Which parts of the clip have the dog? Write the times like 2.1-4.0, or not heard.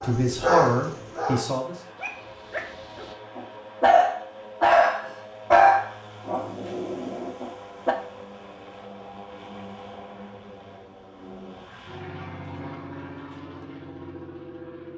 0.0-8.0.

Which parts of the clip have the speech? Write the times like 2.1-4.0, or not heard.
0.0-1.8.